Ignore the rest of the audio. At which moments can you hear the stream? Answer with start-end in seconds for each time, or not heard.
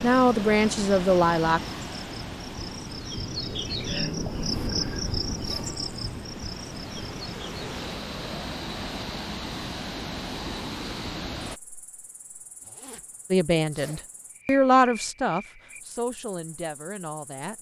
0.0-11.6.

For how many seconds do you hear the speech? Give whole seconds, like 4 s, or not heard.
6 s.